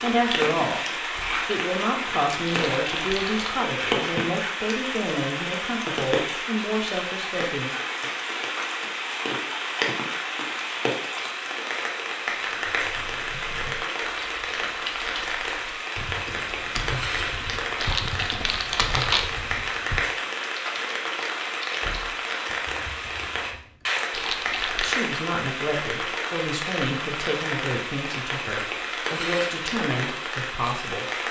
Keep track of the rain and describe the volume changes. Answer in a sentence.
The volume of the rain stays about the same.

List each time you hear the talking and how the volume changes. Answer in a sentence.
The talking can be heard from 0.0 to 7.7 s, at a steady volume; and from 24.8 to 31.1 s, at a steady volume.